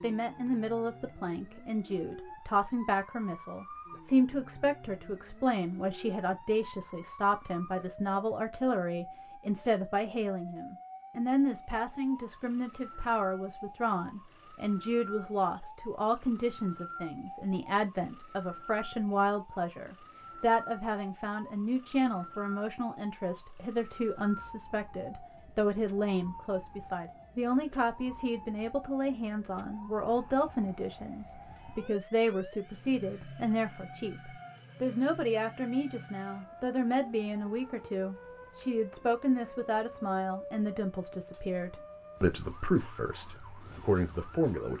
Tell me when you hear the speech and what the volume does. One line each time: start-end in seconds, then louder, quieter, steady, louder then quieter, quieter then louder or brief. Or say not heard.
0.0-44.7 steady.